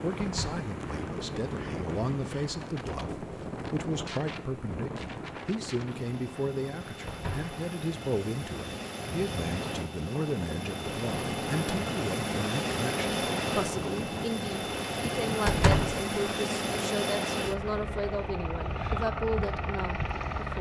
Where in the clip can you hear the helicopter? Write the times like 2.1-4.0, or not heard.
0.0-20.5.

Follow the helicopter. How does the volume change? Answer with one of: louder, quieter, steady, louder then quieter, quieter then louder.
louder.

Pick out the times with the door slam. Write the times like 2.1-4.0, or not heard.
0.2-0.7, 7.0-7.5, 15.4-15.9.